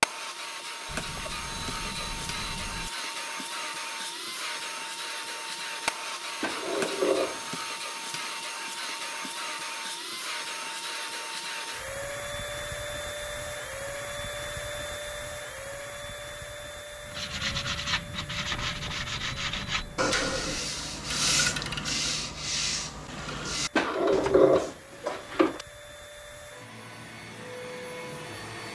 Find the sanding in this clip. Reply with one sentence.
The sanding can be heard from 17.1 to 24.8 s.